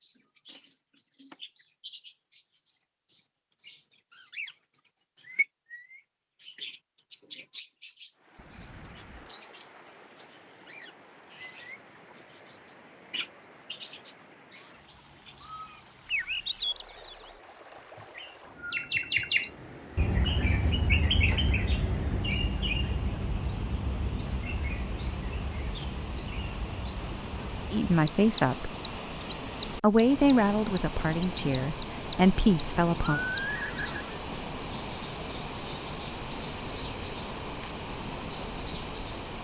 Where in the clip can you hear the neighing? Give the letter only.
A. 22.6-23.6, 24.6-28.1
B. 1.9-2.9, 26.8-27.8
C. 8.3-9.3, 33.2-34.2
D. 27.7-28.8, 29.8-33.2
C.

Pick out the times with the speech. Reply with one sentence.
The speech can be heard from 27.7 to 28.8 s and from 29.8 to 33.2 s.